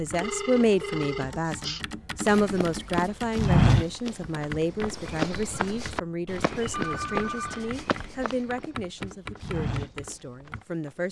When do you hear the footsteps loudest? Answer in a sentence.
The loudest moment of the footsteps is at 4 seconds.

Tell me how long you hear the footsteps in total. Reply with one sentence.
The footsteps can be heard for 9 seconds in total.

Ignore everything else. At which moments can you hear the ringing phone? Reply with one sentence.
The ringing phone can be heard from 0.2 to 1.9 s and from 6.7 to 8.3 s.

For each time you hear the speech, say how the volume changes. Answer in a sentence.
The speech can be heard from 0.0 to 11.0 s, getting quieter.